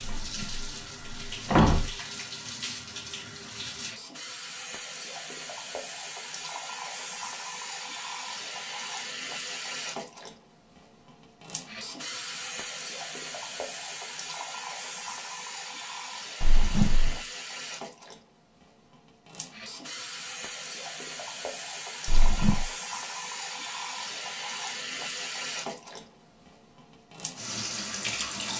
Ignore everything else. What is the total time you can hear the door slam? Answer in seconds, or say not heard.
3 s.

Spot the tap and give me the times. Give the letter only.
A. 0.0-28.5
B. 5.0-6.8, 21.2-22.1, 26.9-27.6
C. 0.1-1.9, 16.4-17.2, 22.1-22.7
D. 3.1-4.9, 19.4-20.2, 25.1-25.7
A.